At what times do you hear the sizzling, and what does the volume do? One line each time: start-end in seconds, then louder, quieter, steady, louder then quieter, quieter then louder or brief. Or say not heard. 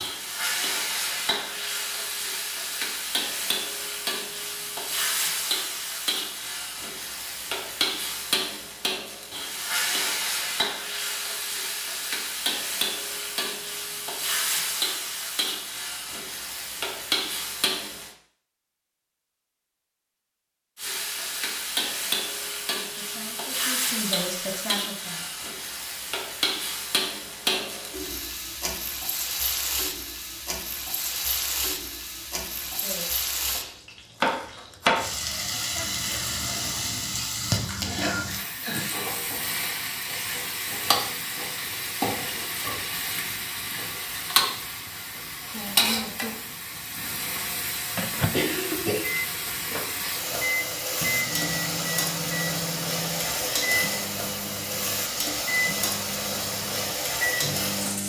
0.0-18.1 steady
20.8-58.0 steady.